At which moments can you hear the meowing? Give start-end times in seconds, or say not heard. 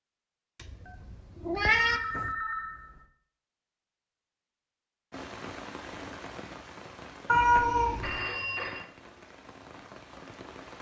1.1-2.3, 7.2-8.2.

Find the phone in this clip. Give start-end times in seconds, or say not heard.
0.8-3.0, 7.5-8.8.